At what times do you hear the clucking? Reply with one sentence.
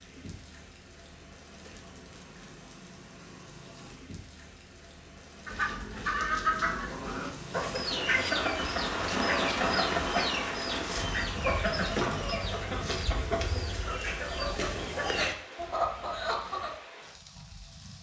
You can hear the clucking from 5.5 to 16.7 s.